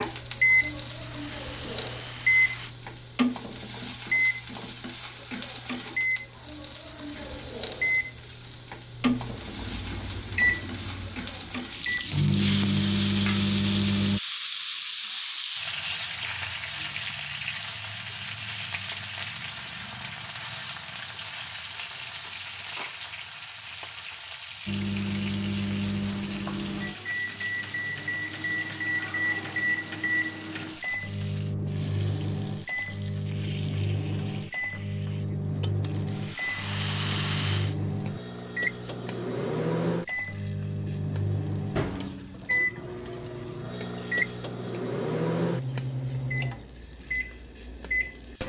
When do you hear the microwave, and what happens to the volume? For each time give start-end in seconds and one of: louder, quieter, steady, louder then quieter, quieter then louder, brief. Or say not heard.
0.0-14.2 quieter then louder
24.6-48.4 steady.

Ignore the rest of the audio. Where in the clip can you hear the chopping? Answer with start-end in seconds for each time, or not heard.
not heard.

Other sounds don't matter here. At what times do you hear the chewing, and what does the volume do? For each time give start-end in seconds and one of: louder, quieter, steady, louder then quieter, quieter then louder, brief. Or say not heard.
not heard.